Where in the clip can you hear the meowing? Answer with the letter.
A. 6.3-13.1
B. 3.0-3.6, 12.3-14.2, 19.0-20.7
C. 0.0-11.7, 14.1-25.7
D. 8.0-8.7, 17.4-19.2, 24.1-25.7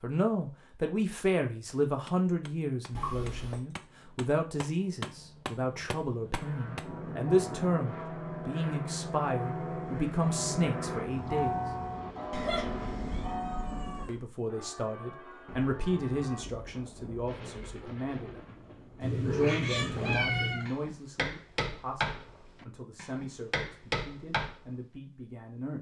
B.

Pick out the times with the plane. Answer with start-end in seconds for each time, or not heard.
6.3-13.1.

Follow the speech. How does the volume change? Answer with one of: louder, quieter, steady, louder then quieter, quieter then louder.
quieter.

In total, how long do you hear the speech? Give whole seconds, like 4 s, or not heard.
23 s.